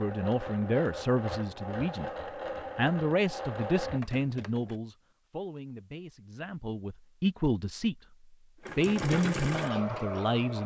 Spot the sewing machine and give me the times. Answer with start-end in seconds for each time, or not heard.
0.0-4.8, 8.6-10.6.